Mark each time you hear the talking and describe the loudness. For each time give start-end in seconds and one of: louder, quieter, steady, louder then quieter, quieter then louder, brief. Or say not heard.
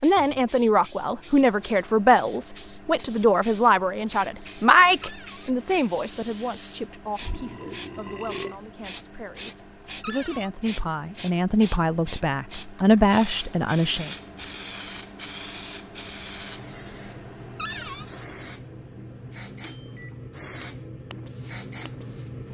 0.0-14.1 quieter then louder.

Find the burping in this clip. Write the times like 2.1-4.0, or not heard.
7.2-8.6.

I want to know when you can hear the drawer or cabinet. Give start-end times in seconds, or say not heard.
5.0-5.5, 10.0-10.5, 17.6-18.1.